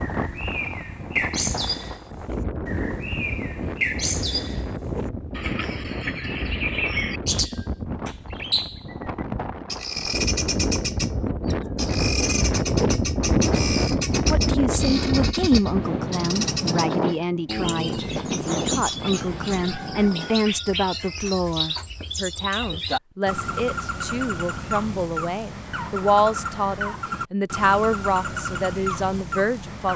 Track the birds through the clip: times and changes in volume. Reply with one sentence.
The birds can be heard from 0.0 to 29.9 s, at a steady volume.